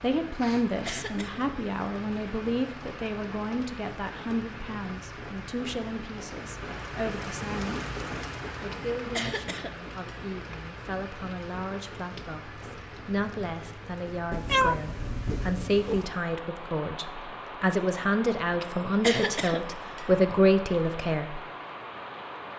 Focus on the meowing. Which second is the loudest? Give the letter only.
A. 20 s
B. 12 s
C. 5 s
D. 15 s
D.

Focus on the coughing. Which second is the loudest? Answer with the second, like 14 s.
19 s.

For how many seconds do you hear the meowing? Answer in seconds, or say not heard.
2 s.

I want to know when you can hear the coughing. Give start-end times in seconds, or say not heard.
0.4-1.4, 8.7-10.5, 18.6-20.4.